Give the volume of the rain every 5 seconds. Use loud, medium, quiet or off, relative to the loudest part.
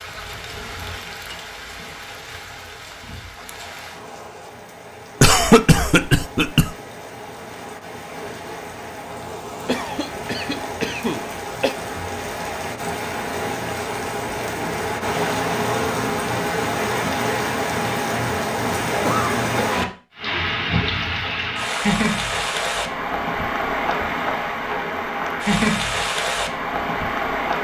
quiet, quiet, medium, loud, loud, loud.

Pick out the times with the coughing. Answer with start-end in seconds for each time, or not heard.
5.2-6.7, 9.7-11.8, 19.0-19.9.